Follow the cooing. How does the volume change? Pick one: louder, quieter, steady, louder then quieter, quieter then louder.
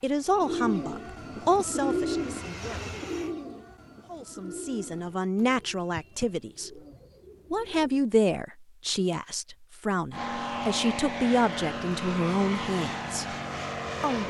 quieter.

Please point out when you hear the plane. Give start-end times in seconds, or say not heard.
0.0-3.4, 10.1-14.2.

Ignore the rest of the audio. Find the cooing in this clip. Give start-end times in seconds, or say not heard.
0.2-8.1.